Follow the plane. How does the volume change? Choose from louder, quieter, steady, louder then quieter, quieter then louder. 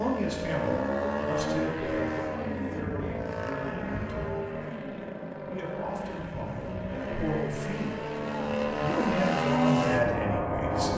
quieter then louder.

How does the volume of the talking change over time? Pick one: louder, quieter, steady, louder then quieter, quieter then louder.
quieter then louder.